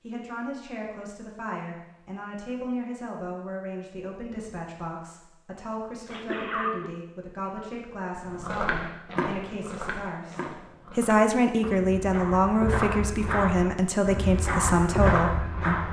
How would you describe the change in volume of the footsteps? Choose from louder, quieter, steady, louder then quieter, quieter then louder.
quieter then louder.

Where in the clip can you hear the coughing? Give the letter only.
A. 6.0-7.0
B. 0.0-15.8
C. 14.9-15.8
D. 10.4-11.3
A.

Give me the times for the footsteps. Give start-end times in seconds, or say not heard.
8.2-15.8.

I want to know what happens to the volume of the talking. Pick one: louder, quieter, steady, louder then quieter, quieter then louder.
louder.